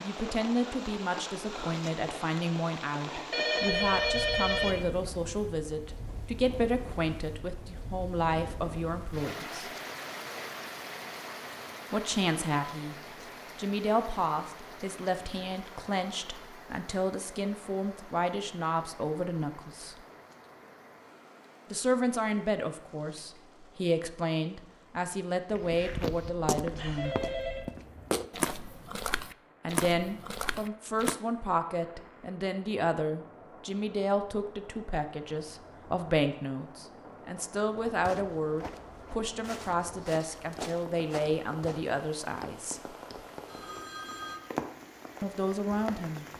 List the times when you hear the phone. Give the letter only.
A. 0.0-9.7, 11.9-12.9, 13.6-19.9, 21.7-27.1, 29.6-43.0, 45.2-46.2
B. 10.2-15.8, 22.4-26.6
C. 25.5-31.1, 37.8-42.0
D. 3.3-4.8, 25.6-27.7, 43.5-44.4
D.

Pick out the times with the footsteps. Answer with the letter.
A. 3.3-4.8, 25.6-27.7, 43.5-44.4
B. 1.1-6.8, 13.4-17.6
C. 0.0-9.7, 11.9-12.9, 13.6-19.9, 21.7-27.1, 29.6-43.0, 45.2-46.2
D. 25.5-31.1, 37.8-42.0
D.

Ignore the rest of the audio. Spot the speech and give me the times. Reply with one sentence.
You can hear the speech from 0.0 to 9.7 s, from 11.9 to 12.9 s, from 13.6 to 19.9 s, from 21.7 to 27.1 s, from 29.6 to 43.0 s and from 45.2 to 46.2 s.